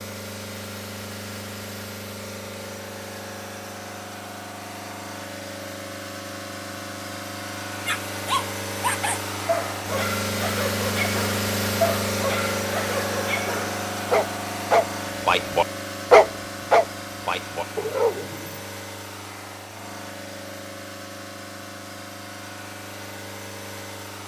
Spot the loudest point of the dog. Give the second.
16 s.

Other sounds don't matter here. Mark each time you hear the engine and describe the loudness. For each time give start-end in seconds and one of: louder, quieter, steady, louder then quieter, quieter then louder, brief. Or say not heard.
0.0-24.2 louder then quieter.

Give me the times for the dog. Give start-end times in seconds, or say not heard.
7.8-18.6.